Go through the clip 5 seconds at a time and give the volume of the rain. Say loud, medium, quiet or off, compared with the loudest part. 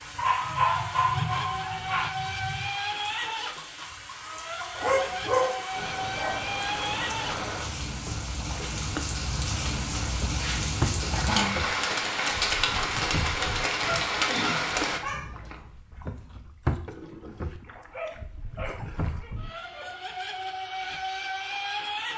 medium, medium, loud, off, off.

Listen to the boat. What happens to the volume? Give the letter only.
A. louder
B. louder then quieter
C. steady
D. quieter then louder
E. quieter
C.